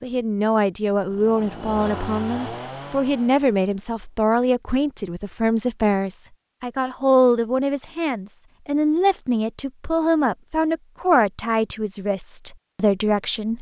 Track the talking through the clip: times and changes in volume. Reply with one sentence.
The talking can be heard from 0.0 to 13.5 s, at a steady volume.